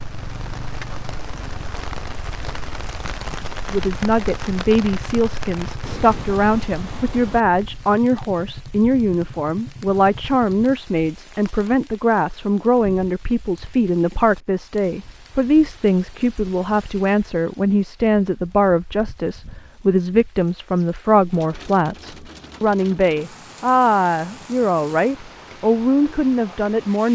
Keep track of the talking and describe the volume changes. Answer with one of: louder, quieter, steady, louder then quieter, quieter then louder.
steady.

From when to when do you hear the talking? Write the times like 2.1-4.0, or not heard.
3.7-27.1.